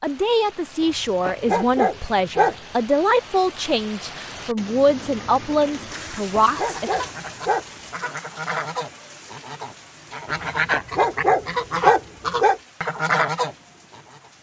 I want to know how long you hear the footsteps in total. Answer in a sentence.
You can't hear the footsteps here.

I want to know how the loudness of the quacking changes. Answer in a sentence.
The loudness of the quacking goes up.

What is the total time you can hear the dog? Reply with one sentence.
You can hear the dog for 6 seconds altogether.